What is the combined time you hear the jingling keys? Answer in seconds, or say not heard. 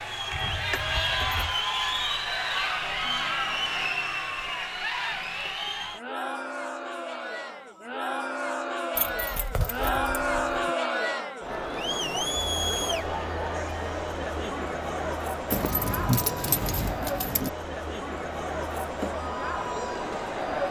5 s.